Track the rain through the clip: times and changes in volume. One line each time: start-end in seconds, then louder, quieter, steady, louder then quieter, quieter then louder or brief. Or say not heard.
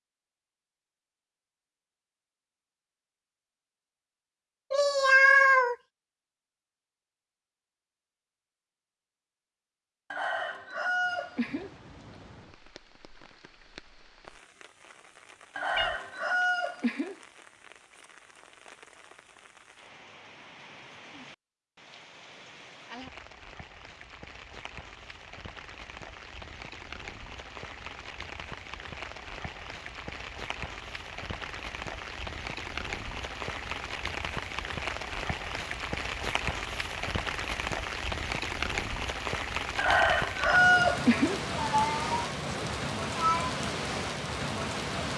10.8-45.1 louder.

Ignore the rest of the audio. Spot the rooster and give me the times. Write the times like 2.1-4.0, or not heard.
10.1-11.7, 15.6-17.1, 39.8-41.4.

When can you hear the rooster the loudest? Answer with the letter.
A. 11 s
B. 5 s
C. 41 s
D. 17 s
C.